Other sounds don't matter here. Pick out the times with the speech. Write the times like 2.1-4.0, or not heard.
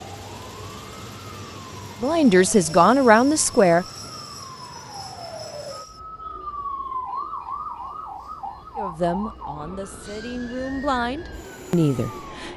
2.0-3.9, 8.8-12.5.